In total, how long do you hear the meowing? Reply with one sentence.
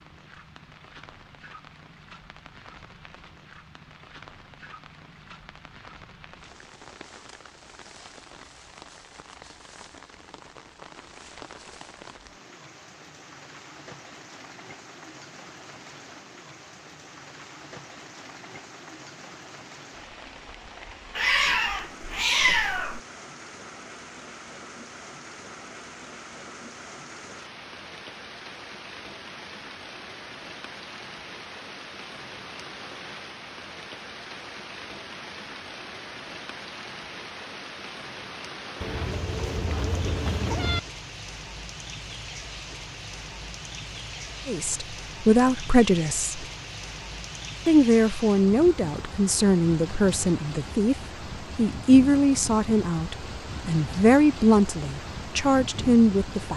The meowing can be heard for 4 seconds in total.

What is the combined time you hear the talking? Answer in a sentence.
The talking can be heard for 10 seconds in total.